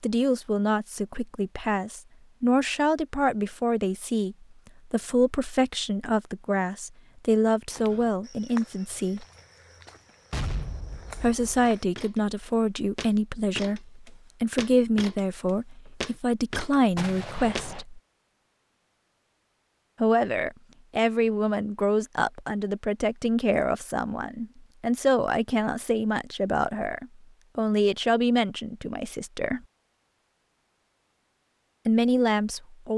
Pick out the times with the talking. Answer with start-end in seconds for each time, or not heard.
0.0-9.2, 11.2-18.0, 20.0-29.6, 31.9-32.9.